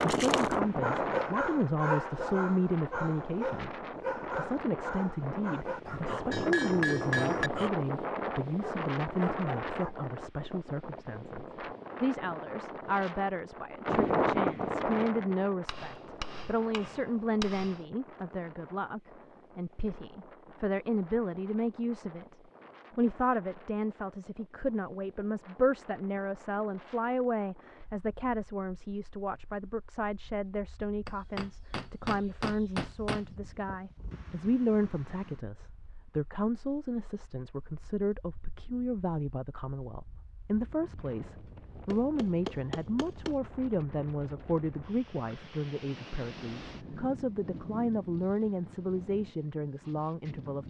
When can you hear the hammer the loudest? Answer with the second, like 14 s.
7 s.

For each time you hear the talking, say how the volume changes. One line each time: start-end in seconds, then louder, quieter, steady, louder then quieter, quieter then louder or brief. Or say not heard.
0.1-50.6 steady.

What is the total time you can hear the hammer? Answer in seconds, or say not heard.
7 s.